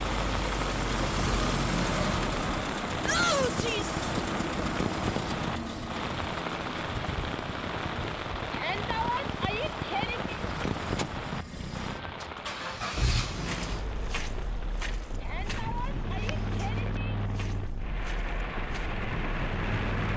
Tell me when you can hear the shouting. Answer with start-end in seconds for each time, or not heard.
3.0-4.0, 8.5-10.3, 15.2-17.1.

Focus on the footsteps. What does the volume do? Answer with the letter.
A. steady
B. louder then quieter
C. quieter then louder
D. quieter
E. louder
D.